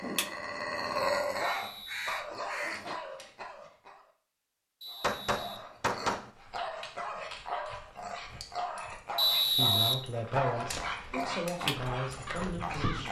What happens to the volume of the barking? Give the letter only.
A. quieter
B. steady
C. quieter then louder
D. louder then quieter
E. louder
C.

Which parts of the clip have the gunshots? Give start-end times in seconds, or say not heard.
5.0-6.3.